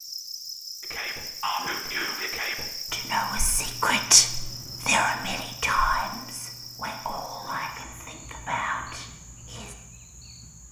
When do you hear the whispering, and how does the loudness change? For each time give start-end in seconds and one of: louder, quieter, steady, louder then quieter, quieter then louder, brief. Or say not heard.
0.8-9.8 louder then quieter.